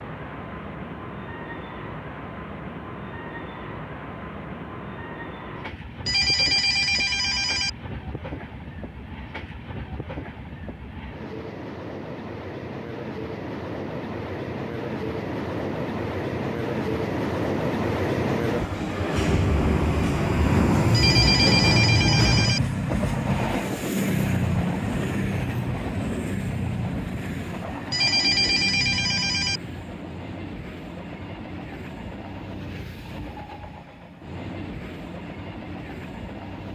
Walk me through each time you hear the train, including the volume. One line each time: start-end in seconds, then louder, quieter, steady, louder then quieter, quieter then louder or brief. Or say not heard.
0.0-36.6 louder then quieter.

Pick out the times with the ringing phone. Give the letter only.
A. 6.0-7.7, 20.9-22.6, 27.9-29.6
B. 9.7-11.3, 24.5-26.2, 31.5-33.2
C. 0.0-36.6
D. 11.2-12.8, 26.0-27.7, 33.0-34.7
A.